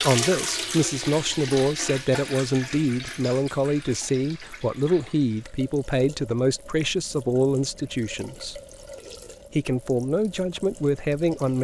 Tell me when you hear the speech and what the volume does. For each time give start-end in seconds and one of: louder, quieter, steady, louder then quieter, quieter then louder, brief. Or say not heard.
0.0-8.6 steady
9.5-11.5 brief.